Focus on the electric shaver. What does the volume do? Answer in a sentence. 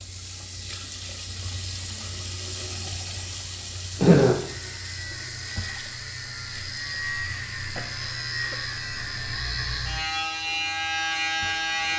The volume of the electric shaver goes up.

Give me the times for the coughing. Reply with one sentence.
You can hear the coughing from 4.0 to 4.5 s and from 7.8 to 8.6 s.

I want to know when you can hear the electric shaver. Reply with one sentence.
The electric shaver can be heard from 4.5 to 11.9 s.